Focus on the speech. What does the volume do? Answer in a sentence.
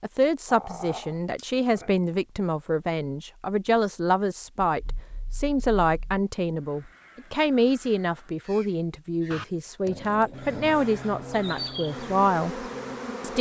The loudness of the speech stays about the same.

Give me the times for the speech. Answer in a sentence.
You can hear the speech from 0.0 to 13.3 s.